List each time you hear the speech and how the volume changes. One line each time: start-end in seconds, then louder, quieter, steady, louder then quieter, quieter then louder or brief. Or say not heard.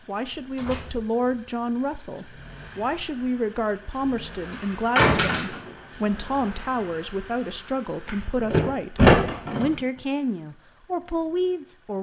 0.1-11.9 steady.